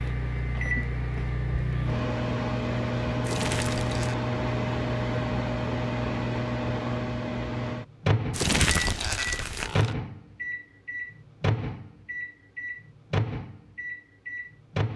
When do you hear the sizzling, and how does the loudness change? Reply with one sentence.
You can't hear the sizzling here.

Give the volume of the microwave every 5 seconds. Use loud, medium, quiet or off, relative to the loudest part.
loud, loud, medium.